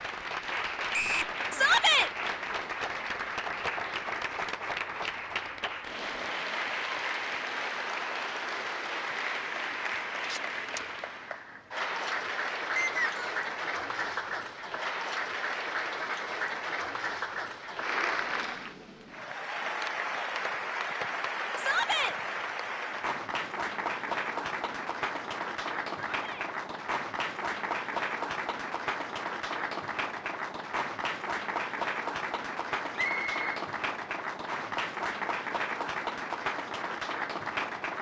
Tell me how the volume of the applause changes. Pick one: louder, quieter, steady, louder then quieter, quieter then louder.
steady.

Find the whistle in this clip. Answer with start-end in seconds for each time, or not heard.
0.9-1.4, 12.8-13.3, 33.0-33.4.